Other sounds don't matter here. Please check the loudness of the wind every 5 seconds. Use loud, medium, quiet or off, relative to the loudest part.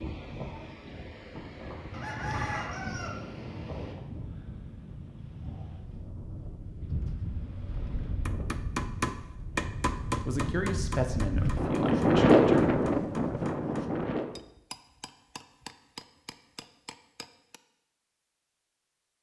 quiet, quiet, loud, off.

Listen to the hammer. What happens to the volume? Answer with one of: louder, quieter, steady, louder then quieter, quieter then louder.
quieter.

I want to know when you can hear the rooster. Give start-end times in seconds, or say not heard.
1.9-4.0.